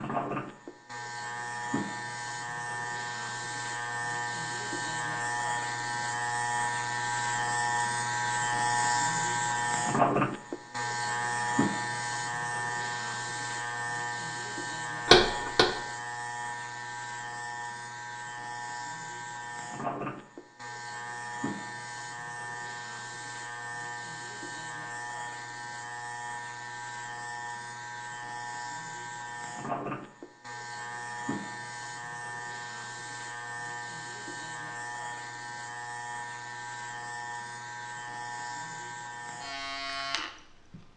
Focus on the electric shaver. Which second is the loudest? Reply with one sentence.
The loudest moment of the electric shaver is at 10 seconds.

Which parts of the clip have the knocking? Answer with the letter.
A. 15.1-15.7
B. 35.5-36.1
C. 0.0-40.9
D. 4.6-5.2
A.